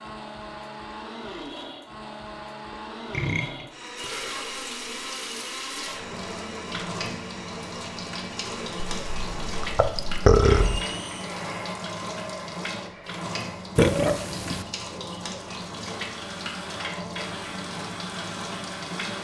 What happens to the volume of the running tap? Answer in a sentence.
The loudness of the running tap stays about the same.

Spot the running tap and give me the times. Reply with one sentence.
You can hear the running tap from 4.0 to 19.1 s.